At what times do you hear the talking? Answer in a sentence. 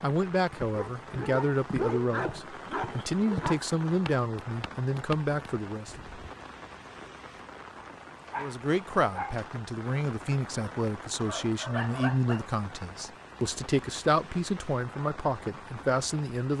You can hear the talking from 0.0 to 6.0 s and from 8.3 to 16.5 s.